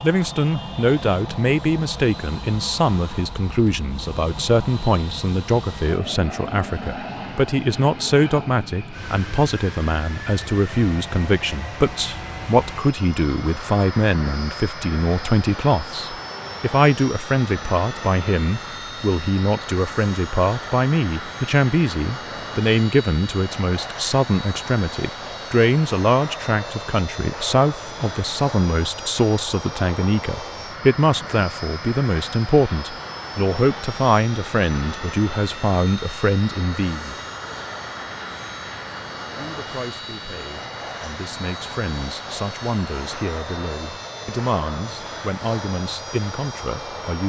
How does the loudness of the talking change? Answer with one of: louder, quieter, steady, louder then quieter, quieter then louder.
quieter.